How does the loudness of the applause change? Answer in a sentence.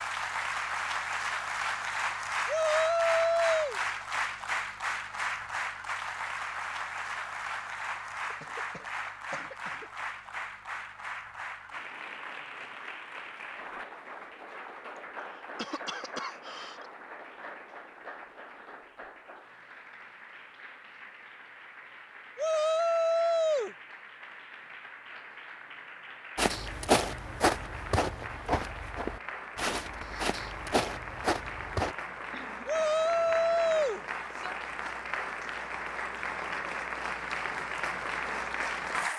The volume of the applause goes down, then up.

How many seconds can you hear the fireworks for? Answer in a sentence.
The fireworks can't be heard in this clip.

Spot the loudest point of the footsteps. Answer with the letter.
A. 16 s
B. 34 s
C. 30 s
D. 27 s
D.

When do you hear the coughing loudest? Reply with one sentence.
The loudest moment of the coughing is at 16 seconds.